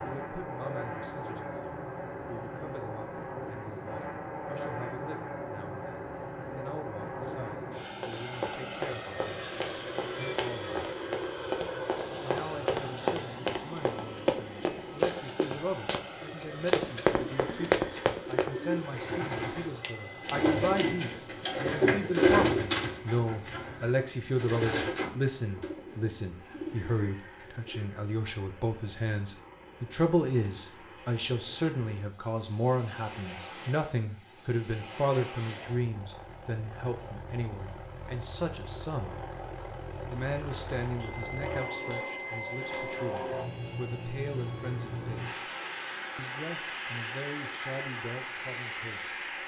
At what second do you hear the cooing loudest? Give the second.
22 s.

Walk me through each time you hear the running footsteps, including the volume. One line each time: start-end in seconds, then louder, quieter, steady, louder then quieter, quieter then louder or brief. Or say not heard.
8.0-18.5 louder.